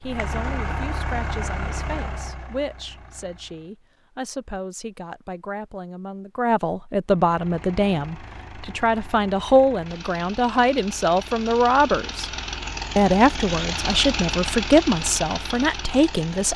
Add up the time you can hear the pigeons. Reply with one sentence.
The pigeons can't be heard in this clip.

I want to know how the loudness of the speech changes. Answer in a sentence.
The volume of the speech goes up.